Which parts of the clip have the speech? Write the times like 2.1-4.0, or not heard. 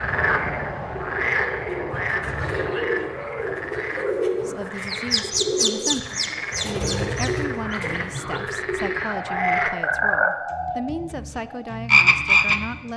4.4-12.9.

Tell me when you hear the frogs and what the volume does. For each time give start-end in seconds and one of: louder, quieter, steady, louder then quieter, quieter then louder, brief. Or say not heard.
0.0-12.8 quieter then louder.